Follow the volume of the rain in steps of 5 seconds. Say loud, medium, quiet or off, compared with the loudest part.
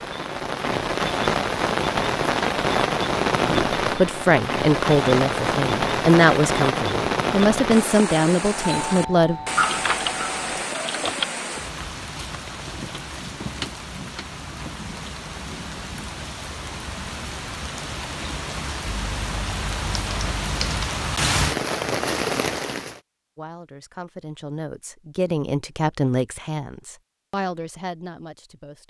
loud, loud, medium, medium, loud, off.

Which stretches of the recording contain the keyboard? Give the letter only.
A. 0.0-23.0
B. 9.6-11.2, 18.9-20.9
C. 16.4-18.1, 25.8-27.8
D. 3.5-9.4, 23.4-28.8
B.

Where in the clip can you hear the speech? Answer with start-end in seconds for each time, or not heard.
3.5-9.4, 23.4-28.8.